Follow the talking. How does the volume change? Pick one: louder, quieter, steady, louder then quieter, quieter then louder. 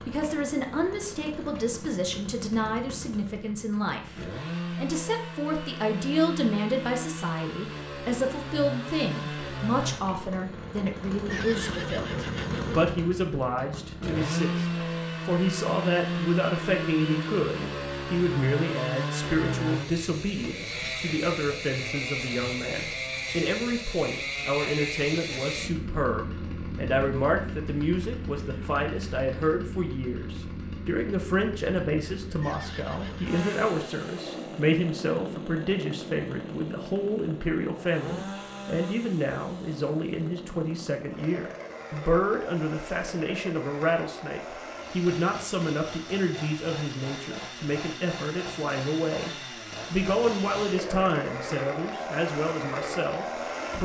steady.